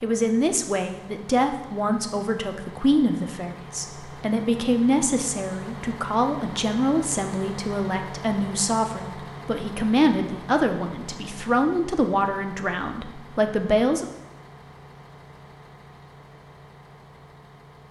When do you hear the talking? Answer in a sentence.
You can hear the talking from 0.0 to 14.1 s.